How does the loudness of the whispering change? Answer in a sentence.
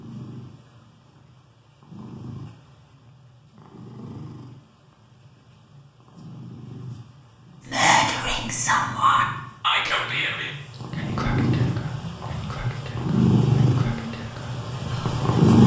The volume of the whispering goes down.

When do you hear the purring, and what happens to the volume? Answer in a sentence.
You can hear the purring from 0.0 to 15.6 s, getting louder.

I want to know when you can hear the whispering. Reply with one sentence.
The whispering can be heard from 7.7 to 15.2 s.